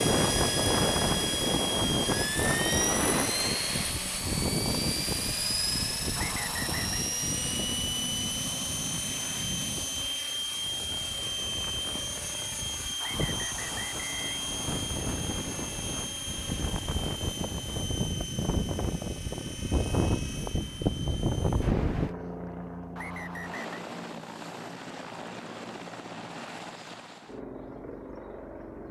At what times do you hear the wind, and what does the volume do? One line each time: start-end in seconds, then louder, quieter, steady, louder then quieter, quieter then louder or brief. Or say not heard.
0.0-22.1 quieter then louder.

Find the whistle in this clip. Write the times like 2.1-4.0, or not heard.
6.2-7.0, 13.0-14.8, 22.9-23.9.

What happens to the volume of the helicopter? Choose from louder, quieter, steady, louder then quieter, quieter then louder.
quieter.